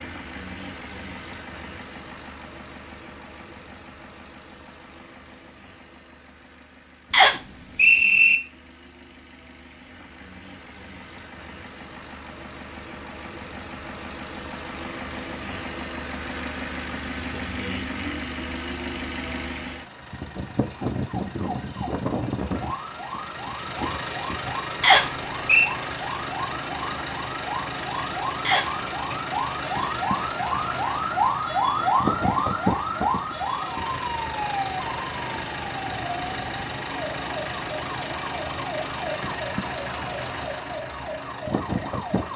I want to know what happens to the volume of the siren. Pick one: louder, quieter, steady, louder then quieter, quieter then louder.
louder then quieter.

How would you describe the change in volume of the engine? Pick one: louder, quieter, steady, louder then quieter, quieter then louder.
louder.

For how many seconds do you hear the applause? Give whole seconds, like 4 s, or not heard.
not heard.